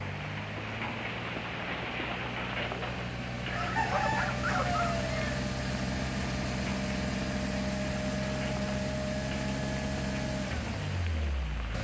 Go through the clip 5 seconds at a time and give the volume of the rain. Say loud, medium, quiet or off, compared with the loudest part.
loud, medium, medium.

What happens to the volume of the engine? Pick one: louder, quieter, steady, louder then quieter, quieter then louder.
louder.